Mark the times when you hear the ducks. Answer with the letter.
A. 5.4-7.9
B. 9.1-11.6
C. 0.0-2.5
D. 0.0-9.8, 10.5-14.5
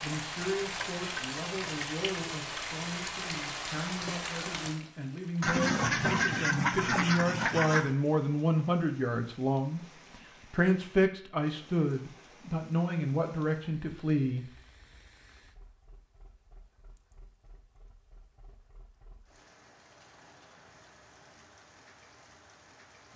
A.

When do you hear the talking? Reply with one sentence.
The talking can be heard from 0.0 to 9.8 s and from 10.5 to 14.5 s.